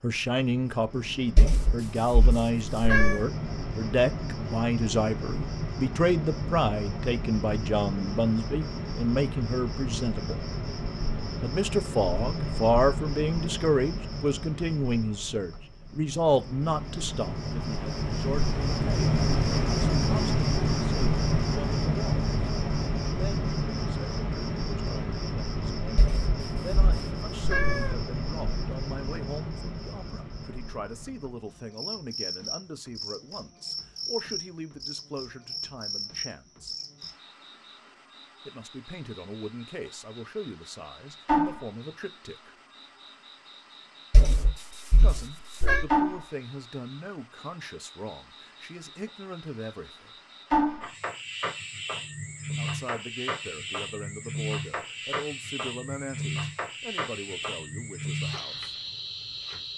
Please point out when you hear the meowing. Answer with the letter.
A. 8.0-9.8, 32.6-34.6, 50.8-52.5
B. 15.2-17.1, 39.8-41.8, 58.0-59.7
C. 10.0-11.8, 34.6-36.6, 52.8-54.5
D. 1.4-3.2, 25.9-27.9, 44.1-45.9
D.